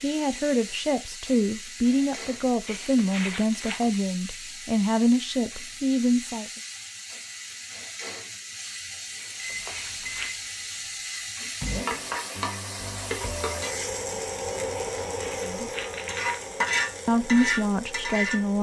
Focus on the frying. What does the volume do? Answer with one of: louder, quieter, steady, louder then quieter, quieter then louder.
louder.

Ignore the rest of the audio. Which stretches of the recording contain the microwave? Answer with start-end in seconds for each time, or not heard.
9.3-11.8.